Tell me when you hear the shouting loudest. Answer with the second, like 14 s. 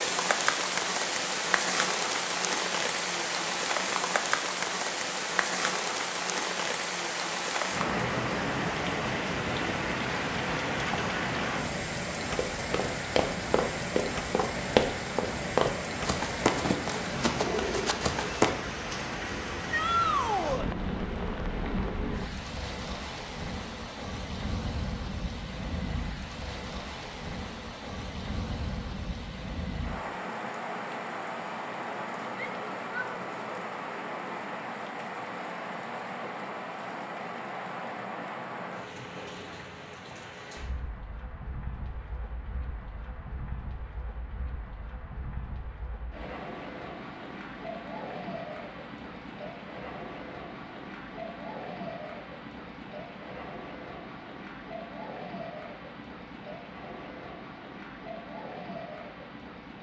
20 s.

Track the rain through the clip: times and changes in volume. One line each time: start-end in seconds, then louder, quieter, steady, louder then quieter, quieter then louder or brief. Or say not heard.
0.0-59.7 quieter.